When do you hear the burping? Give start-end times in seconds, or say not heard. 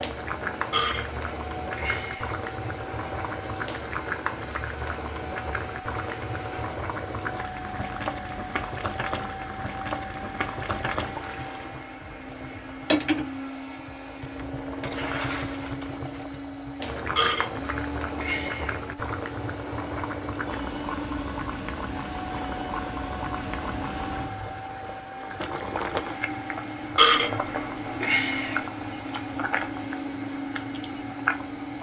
0.7-2.4, 17.1-18.8, 26.9-28.6.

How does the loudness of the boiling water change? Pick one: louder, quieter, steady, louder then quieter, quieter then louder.
steady.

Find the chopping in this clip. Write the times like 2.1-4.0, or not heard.
not heard.